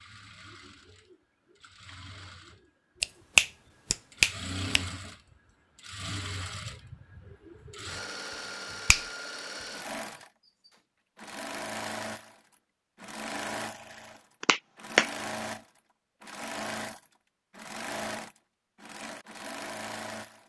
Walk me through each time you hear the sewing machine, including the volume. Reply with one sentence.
The sewing machine can be heard from 0.0 to 20.4 s, getting louder.